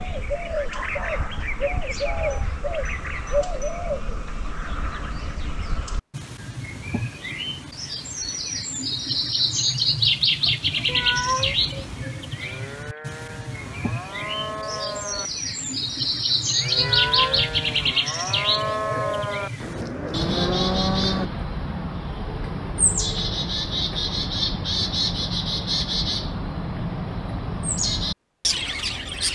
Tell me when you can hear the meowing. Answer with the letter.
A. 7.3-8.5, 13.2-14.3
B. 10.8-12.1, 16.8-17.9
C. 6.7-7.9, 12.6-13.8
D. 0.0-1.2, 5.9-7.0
B.